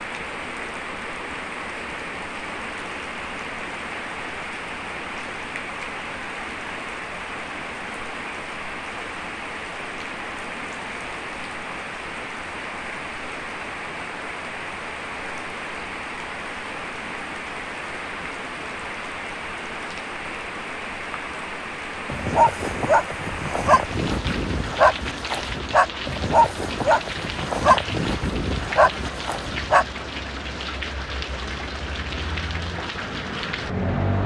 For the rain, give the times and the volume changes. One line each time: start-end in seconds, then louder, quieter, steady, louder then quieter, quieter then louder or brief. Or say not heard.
0.0-34.2 steady.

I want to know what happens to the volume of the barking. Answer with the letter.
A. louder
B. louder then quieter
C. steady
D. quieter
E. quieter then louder
C.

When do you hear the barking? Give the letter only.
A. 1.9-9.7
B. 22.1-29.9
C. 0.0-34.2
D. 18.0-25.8
B.